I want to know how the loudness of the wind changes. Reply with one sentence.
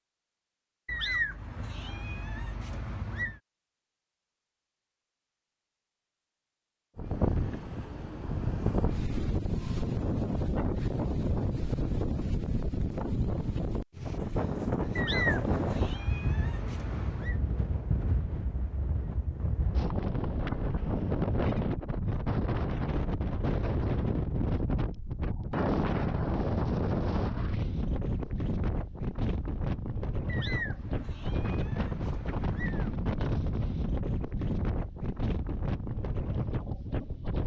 The volume of the wind stays about the same.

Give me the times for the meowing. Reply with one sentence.
The meowing can be heard from 0.8 to 3.4 s, from 14.9 to 17.4 s and from 30.2 to 32.9 s.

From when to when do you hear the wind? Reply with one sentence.
You can hear the wind from 7.0 to 37.4 s.